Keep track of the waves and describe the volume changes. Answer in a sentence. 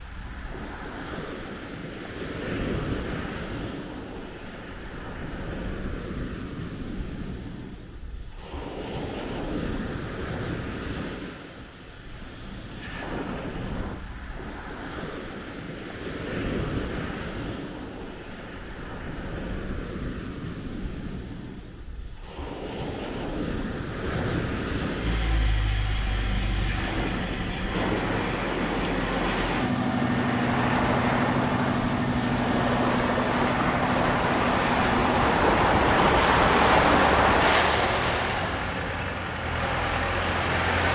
The volume of the waves goes up.